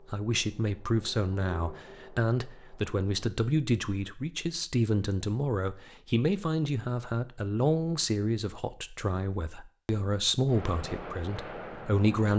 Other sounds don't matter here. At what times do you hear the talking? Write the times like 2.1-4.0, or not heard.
0.1-12.3.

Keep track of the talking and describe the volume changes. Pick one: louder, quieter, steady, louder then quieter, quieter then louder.
steady.